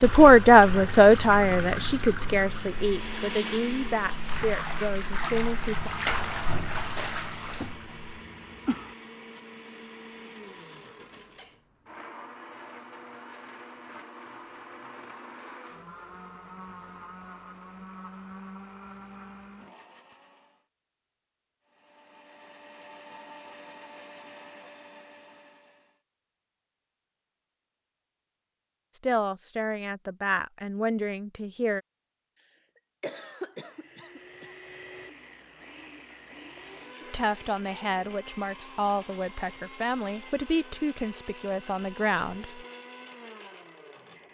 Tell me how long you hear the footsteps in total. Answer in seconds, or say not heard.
not heard.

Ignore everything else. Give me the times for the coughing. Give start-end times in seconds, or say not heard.
7.6-8.9, 33.0-34.5.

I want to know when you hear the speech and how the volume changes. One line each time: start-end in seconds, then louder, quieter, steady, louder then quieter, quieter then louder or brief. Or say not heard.
0.0-5.9 quieter
28.9-31.8 brief
37.0-42.6 steady.